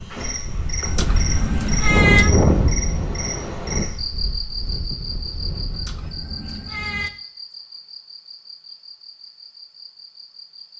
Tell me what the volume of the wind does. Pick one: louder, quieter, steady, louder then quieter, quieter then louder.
louder then quieter.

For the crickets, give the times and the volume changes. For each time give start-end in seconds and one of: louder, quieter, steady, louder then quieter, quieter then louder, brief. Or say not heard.
0.0-10.7 quieter.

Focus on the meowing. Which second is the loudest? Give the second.
2 s.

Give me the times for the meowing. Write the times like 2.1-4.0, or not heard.
0.8-2.3, 5.7-7.1.